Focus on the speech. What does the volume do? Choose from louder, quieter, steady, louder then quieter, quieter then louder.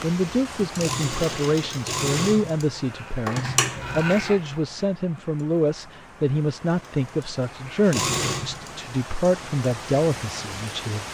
steady.